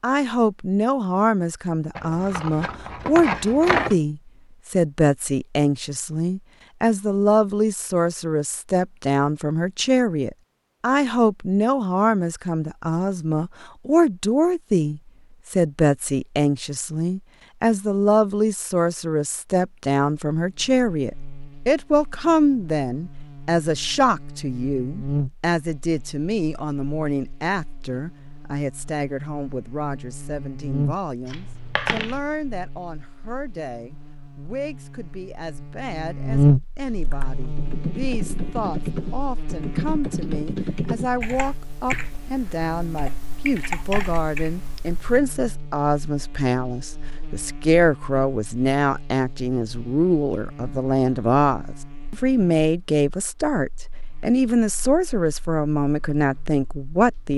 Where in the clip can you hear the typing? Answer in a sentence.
The typing can be heard from 37.0 to 45.2 s.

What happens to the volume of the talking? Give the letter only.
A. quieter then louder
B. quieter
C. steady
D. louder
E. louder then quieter
A.